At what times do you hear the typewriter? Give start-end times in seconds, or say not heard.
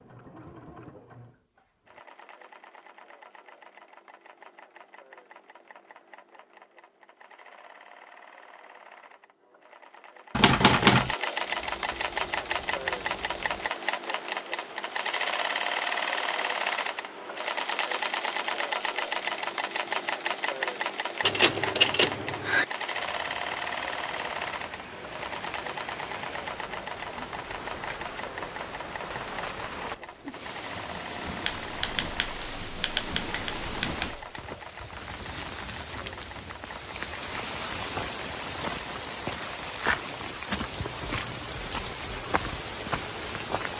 10.3-11.2, 21.2-22.6, 31.4-34.4.